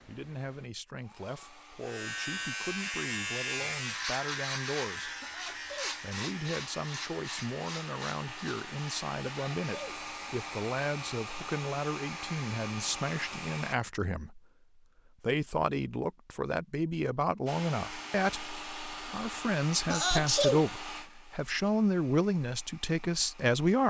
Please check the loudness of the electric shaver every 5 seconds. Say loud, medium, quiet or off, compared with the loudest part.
loud, medium, quiet, off, off.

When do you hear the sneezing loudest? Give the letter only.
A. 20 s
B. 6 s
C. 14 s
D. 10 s
A.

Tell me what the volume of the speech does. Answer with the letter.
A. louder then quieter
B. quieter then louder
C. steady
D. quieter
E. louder
E.